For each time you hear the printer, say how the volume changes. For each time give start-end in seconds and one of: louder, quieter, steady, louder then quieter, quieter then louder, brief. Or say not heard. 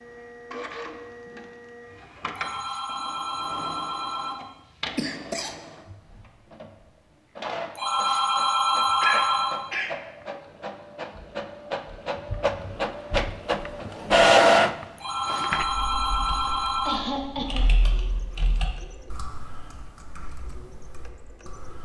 0.0-21.8 louder then quieter.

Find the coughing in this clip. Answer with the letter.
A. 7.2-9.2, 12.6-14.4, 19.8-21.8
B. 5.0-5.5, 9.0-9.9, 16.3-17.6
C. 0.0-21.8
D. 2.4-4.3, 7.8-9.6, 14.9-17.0
B.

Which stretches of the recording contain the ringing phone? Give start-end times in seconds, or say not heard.
2.4-4.3, 7.8-9.6, 14.9-17.0.